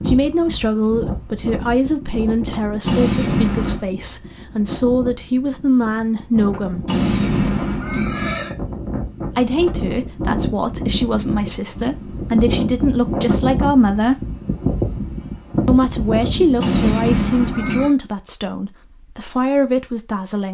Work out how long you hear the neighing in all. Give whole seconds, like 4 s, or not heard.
4 s.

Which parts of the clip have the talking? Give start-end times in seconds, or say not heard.
0.1-6.8, 9.2-14.3, 15.7-20.4.